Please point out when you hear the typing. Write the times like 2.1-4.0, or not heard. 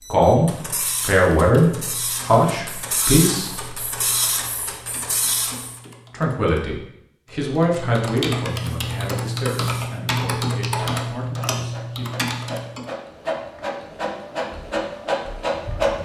0.8-12.9.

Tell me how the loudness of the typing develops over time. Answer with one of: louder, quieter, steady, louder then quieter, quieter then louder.
louder.